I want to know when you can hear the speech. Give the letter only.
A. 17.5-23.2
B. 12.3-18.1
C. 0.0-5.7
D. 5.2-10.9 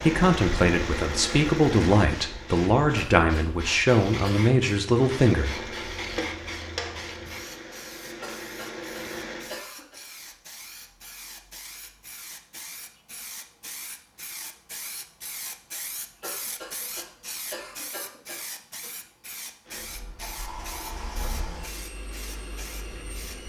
C.